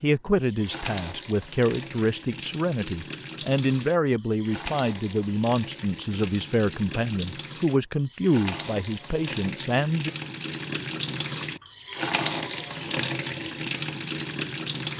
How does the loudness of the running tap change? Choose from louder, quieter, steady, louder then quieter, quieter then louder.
louder.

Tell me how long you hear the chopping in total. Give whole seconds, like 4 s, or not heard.
not heard.